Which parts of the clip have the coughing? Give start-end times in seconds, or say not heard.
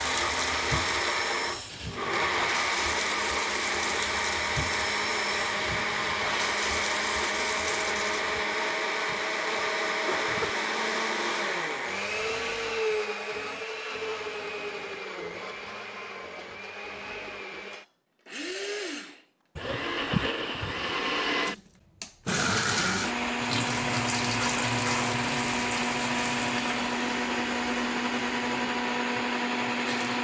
8.5-10.5, 19.6-20.9.